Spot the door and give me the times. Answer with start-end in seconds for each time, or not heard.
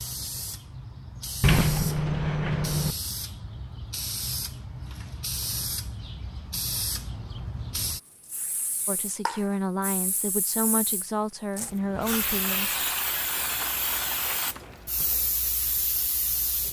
1.4-3.0.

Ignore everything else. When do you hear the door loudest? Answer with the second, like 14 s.
2 s.